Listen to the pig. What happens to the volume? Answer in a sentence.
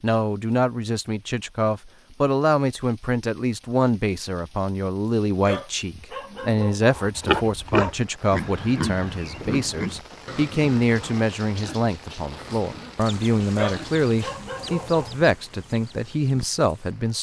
The loudness of the pig goes down.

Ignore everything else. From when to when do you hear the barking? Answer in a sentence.
The barking can be heard from 5.4 to 7.0 s and from 13.6 to 15.2 s.